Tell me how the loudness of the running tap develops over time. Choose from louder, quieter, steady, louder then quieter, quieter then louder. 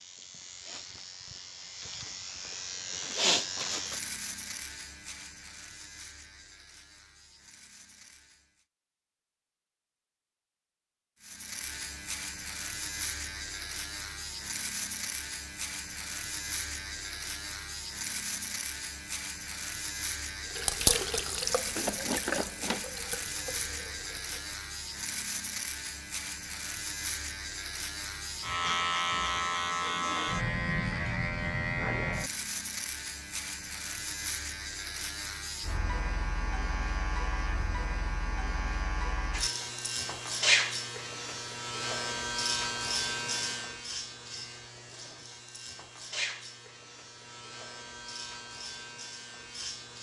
quieter.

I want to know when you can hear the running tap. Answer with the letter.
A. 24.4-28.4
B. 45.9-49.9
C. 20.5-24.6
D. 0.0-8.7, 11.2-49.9
C.